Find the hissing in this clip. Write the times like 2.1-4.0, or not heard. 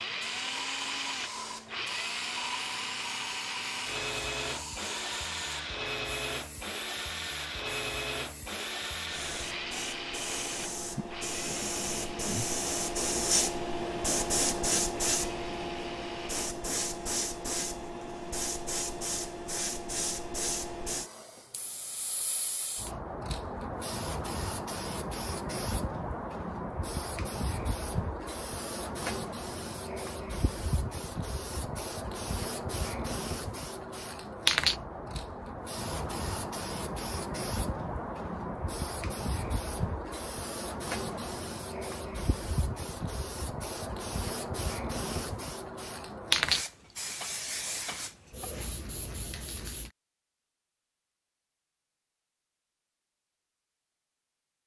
0.1-49.9.